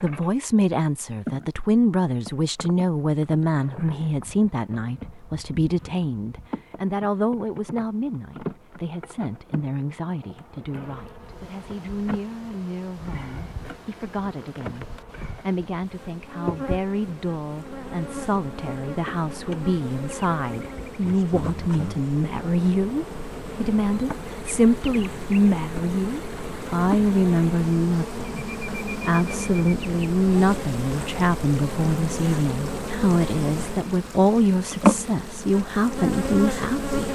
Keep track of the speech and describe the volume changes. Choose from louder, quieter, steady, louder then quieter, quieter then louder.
quieter then louder.